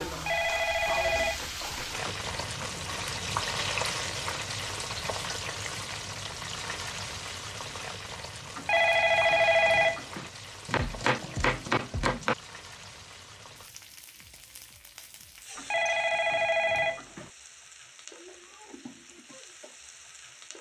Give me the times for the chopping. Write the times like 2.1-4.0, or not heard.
1.0-2.7, 10.7-12.3.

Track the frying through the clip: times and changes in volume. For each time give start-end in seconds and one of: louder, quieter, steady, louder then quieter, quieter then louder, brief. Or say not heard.
0.0-20.5 quieter.